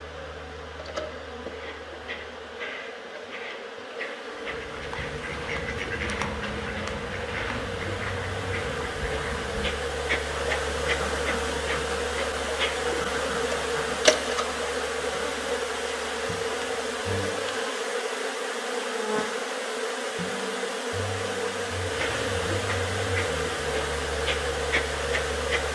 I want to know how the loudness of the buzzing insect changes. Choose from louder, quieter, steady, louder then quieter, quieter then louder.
louder.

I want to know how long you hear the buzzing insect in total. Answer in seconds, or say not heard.
26 s.